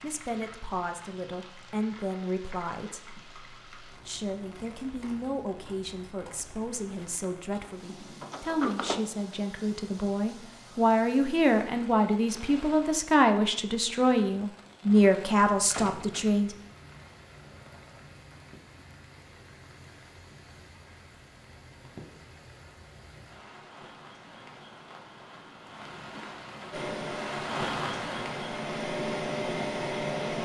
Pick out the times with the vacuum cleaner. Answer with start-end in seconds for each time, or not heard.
26.7-30.4.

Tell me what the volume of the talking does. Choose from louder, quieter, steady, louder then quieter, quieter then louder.
louder.